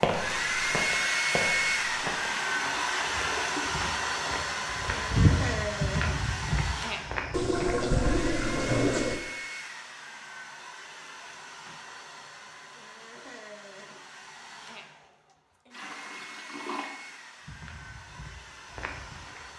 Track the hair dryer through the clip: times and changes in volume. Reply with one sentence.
The hair dryer can be heard from 0.0 to 19.5 s, getting quieter.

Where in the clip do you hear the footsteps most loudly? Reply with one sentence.
The loudest moment of the footsteps is at 5 seconds.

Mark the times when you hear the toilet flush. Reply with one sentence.
You can hear the toilet flush from 1.9 to 3.9 s, from 7.3 to 9.2 s and from 15.7 to 16.9 s.